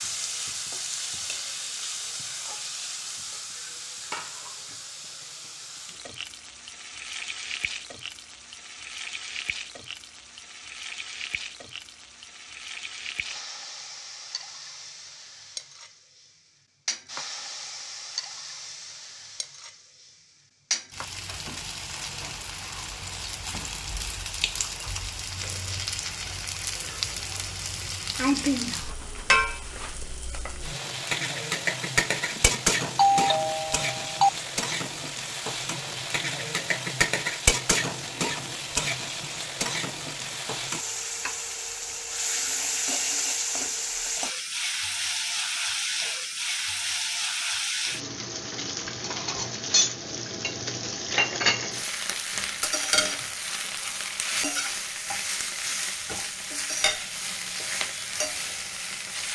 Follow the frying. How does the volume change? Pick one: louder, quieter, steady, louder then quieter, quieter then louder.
louder.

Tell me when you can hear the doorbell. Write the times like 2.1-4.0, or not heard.
32.3-34.3.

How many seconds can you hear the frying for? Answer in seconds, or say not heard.
59 s.